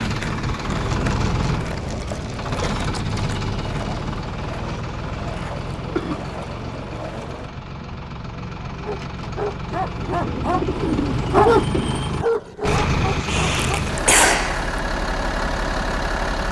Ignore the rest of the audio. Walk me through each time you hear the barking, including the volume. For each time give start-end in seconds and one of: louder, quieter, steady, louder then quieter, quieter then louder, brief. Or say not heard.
8.8-13.8 louder then quieter.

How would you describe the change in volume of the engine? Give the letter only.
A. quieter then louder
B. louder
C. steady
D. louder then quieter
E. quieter
A.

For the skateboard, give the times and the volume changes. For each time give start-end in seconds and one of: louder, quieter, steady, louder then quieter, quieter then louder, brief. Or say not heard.
0.0-7.5 steady.